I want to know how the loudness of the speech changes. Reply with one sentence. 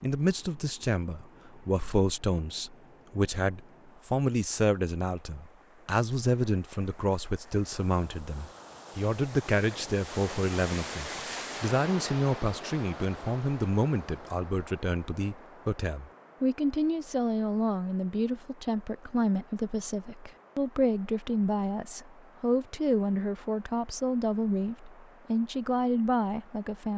The loudness of the speech stays about the same.